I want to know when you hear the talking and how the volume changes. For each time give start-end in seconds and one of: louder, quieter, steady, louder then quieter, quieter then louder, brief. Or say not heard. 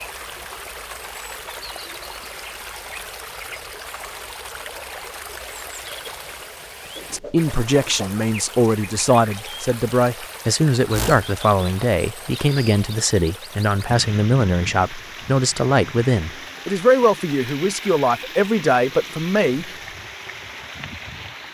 7.1-19.7 steady.